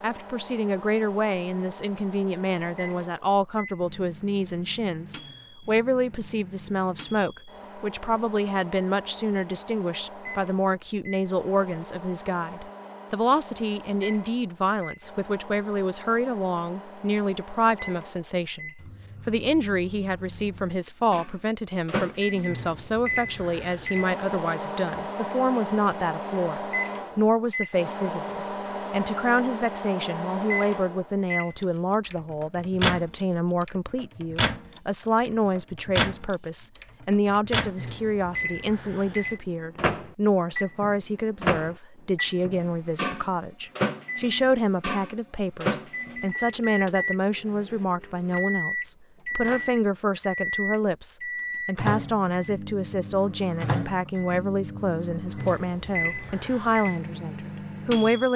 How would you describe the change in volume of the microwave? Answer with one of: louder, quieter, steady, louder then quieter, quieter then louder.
louder.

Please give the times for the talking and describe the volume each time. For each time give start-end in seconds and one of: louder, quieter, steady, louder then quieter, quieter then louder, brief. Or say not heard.
0.0-58.3 steady.